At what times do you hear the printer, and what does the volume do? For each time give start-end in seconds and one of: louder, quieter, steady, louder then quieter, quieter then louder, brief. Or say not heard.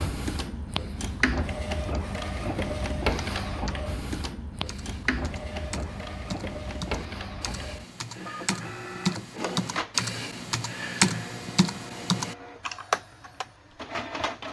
0.0-14.4 quieter.